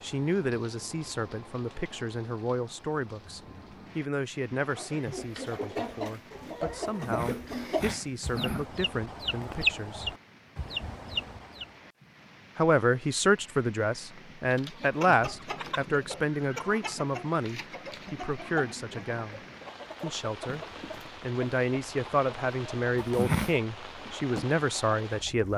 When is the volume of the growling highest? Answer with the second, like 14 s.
23 s.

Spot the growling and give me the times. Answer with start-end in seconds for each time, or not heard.
7.0-8.7, 22.9-23.6.